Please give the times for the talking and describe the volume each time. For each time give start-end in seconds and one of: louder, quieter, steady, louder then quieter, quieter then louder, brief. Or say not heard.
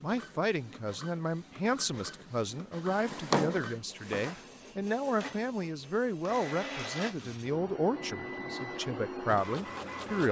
0.0-10.2 steady.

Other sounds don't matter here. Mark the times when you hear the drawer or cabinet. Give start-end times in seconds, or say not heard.
2.9-4.4.